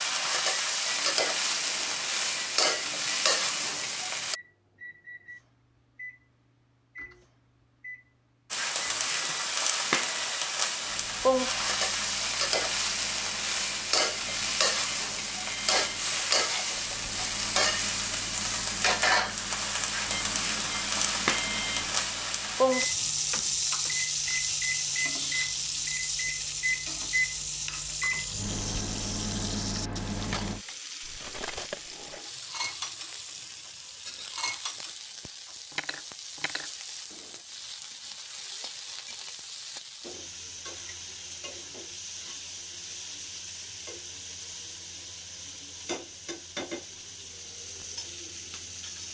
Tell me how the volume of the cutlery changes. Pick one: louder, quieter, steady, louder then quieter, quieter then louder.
quieter then louder.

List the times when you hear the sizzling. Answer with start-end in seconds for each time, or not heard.
0.0-4.3, 8.5-49.0.